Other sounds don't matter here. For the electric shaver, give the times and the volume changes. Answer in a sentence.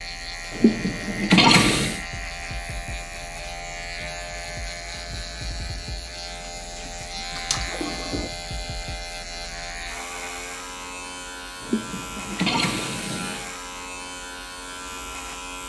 You can hear the electric shaver from 0.0 to 15.6 s, at a steady volume.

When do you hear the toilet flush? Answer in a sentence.
You can hear the toilet flush from 0.5 to 2.0 s, from 6.8 to 8.3 s and from 11.6 to 13.5 s.